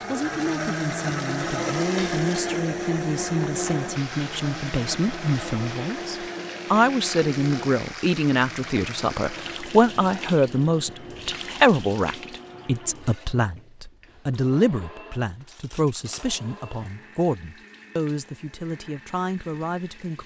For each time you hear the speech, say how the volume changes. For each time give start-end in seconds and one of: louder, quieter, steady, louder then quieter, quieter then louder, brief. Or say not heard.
0.1-20.2 louder then quieter.